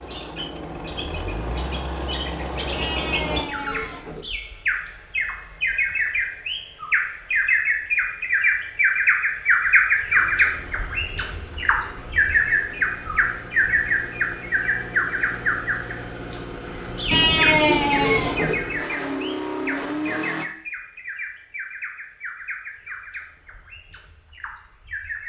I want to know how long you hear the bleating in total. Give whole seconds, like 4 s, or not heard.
3 s.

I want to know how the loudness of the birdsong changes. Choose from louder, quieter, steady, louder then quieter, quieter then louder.
louder then quieter.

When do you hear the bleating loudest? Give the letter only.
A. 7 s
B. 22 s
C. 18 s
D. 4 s
C.